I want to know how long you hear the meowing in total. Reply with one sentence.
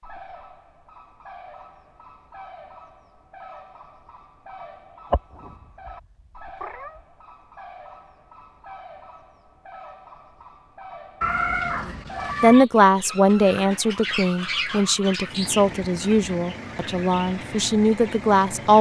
You can hear the meowing for 3 seconds altogether.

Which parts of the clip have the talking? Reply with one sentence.
The talking can be heard from 11.8 to 18.7 s.